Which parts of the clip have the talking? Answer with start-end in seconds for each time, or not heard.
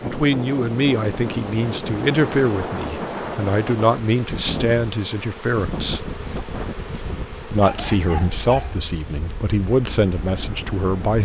0.0-6.0, 7.5-11.2.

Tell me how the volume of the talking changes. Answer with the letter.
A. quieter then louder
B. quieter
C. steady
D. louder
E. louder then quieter
C.